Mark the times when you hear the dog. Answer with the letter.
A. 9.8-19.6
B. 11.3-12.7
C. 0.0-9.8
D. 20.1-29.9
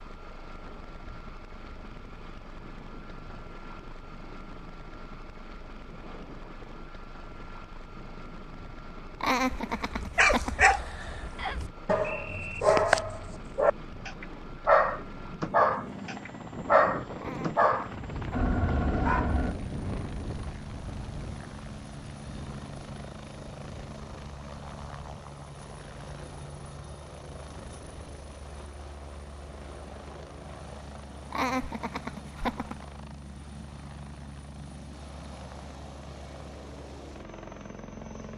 A.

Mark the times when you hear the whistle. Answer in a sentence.
The whistle can be heard from 11.3 to 12.7 s.